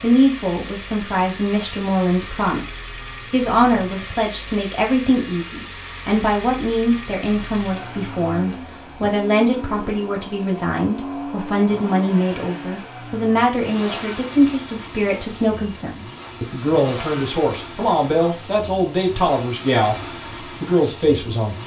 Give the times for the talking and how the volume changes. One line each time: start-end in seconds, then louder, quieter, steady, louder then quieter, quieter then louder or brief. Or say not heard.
0.0-21.6 steady.